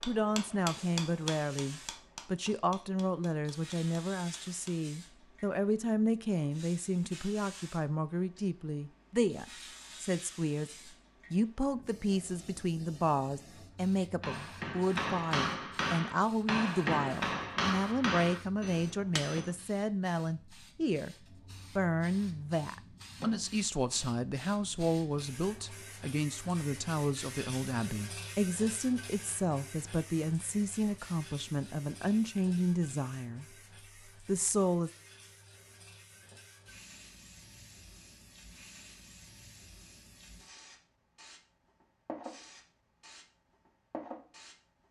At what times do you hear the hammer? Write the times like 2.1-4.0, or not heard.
0.0-4.8, 14.2-19.5.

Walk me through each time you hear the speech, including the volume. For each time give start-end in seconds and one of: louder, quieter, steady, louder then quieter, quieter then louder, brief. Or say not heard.
0.0-33.5 steady
34.2-34.9 brief.